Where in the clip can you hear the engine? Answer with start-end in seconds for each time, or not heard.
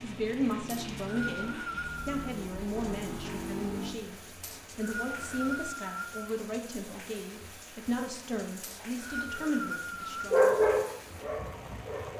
0.0-5.7.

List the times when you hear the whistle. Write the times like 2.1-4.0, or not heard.
0.7-2.3, 4.4-6.3, 8.6-10.2.